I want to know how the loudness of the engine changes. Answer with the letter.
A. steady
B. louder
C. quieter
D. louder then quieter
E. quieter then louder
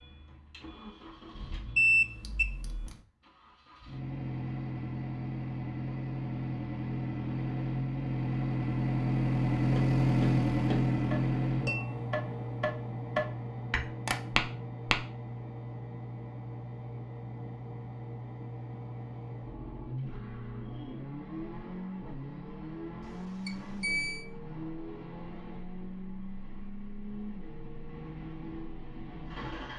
D.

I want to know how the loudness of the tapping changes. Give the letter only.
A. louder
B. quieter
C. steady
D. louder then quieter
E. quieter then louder
A.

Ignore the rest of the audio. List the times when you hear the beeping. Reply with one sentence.
The beeping can be heard from 1.8 to 3.0 s and from 23.0 to 24.2 s.